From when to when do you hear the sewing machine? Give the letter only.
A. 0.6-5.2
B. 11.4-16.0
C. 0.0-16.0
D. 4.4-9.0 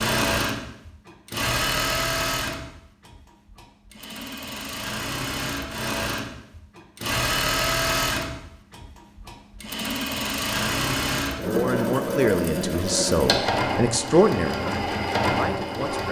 C.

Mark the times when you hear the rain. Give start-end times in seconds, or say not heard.
not heard.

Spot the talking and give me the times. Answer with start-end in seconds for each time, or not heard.
11.4-16.0.